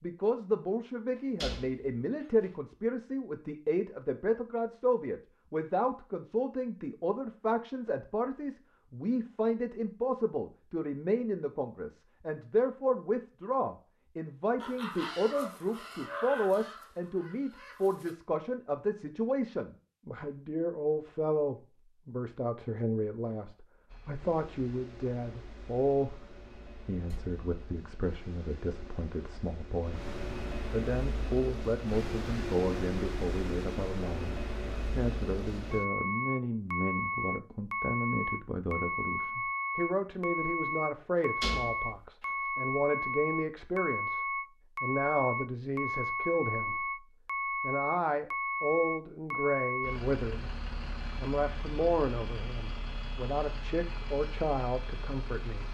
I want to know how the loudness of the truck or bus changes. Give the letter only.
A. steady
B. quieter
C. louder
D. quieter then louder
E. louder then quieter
E.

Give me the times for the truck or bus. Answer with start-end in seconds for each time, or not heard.
23.9-55.7.